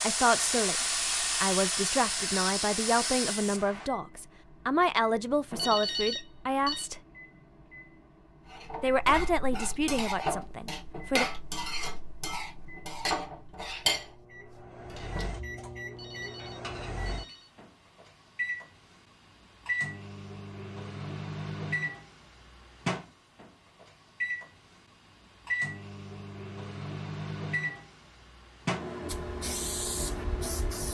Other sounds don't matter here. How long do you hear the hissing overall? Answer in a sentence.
The hissing can be heard for 6 seconds in total.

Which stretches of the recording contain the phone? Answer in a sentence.
The phone can be heard from 5.5 to 6.8 s and from 15.9 to 17.5 s.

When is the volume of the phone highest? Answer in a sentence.
The loudest moment of the phone is at 6 seconds.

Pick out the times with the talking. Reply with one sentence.
You can hear the talking from 0.0 to 0.8 s, from 1.4 to 7.0 s and from 8.8 to 11.2 s.